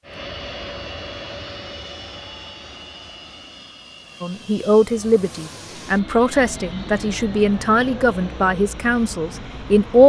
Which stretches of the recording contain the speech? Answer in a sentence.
You can hear the speech from 4.2 to 10.0 s.